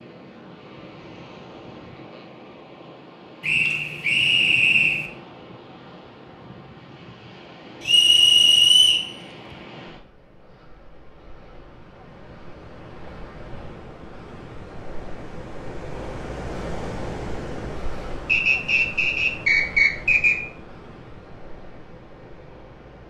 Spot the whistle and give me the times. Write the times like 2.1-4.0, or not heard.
3.4-5.1, 7.8-9.6, 18.2-20.4.